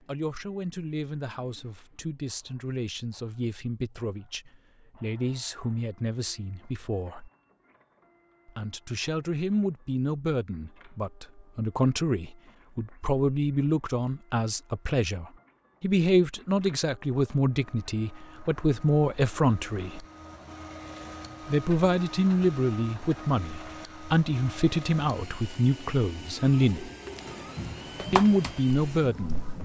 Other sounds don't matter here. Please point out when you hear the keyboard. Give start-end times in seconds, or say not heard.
27.2-29.5.